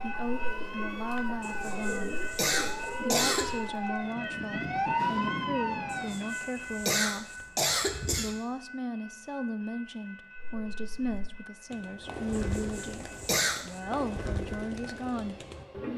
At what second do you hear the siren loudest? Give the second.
5 s.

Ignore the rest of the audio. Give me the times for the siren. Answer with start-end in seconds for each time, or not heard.
0.0-6.5.